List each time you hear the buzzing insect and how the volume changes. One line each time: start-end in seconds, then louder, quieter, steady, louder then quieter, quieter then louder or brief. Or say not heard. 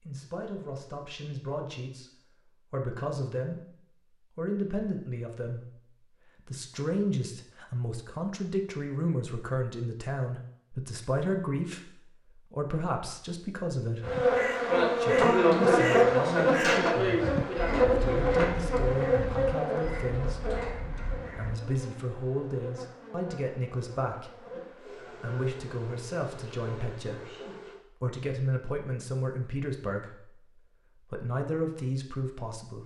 14.0-27.8 quieter.